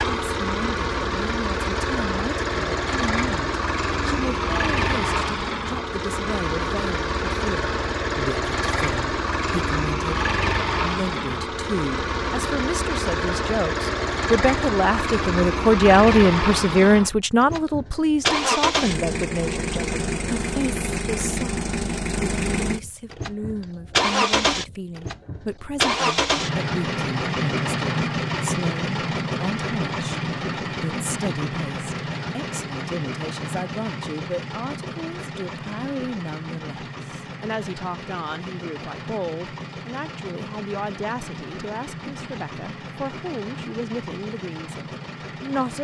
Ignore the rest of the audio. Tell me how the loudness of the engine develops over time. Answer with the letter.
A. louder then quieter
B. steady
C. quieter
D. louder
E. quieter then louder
C.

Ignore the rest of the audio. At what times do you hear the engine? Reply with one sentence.
You can hear the engine from 0.0 to 45.7 s.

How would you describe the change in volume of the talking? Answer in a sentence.
The loudness of the talking goes up, then down.